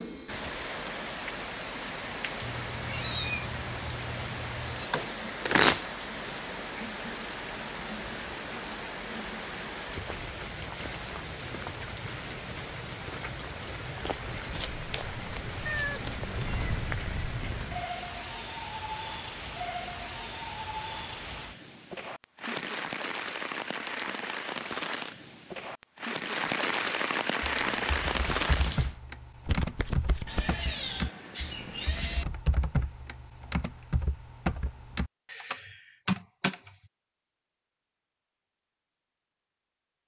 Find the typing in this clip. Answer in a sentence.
You can hear the typing from 27.4 to 36.7 s.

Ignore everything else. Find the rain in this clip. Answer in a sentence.
The rain can be heard from 0.0 to 29.0 s.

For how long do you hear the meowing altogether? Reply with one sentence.
You can hear the meowing for 6 seconds altogether.